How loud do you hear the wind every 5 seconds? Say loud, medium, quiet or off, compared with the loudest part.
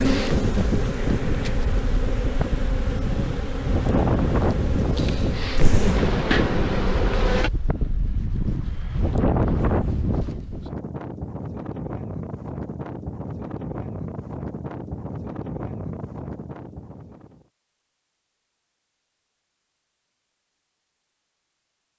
loud, loud, medium, medium, off.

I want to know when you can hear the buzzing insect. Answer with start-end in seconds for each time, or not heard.
0.0-7.5.